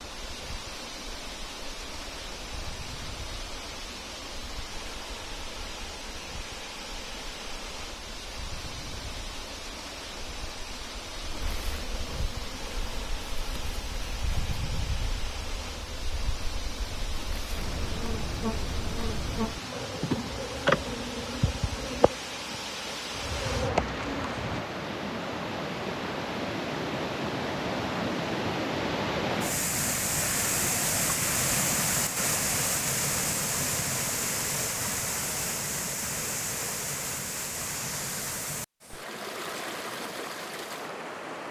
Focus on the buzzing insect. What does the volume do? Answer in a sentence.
The volume of the buzzing insect goes up.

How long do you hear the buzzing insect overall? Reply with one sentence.
You can hear the buzzing insect for 25 seconds altogether.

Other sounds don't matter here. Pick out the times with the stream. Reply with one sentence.
The stream can be heard from 0.0 to 41.4 s.